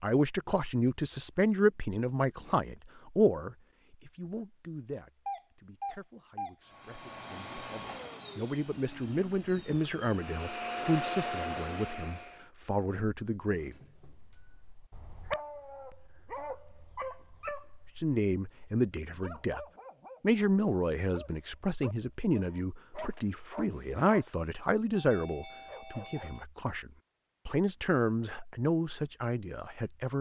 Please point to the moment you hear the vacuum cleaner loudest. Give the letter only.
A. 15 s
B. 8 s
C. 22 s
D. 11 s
D.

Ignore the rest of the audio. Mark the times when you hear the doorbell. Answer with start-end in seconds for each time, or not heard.
5.2-6.5, 13.5-14.7, 24.9-26.4.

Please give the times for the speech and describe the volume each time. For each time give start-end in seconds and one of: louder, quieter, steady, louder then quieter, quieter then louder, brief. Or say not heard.
0.0-13.8 quieter then louder
17.9-30.1 quieter then louder.